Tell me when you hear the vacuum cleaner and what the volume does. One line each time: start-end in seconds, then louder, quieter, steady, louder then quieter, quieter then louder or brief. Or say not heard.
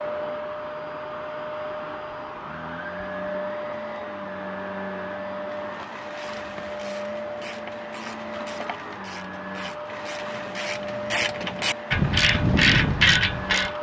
0.0-13.7 steady.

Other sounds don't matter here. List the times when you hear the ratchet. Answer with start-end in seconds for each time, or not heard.
6.0-13.7.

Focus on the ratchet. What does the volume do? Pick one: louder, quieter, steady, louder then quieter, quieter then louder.
louder.